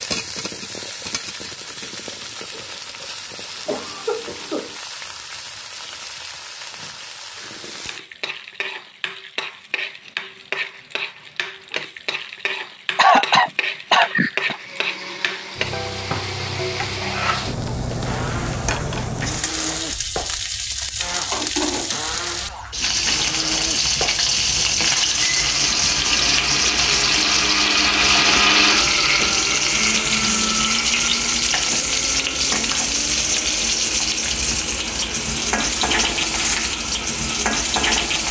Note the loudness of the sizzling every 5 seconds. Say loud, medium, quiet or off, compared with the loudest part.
quiet, quiet, medium, medium, loud, loud, loud, loud.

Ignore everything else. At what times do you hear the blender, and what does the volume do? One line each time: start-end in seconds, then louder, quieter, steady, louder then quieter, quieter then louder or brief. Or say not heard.
14.5-38.2 louder then quieter.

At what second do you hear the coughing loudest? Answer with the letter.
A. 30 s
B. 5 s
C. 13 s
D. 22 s
C.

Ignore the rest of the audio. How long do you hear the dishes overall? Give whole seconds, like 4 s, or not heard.
not heard.